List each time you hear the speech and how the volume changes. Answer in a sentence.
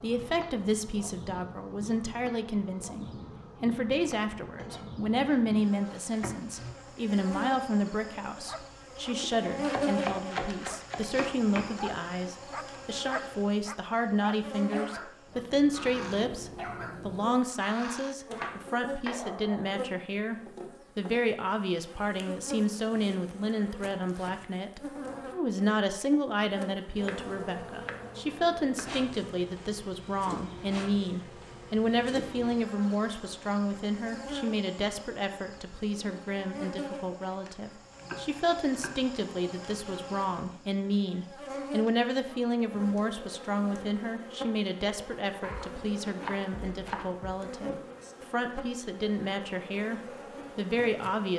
You can hear the speech from 0.0 to 51.3 s, at a steady volume.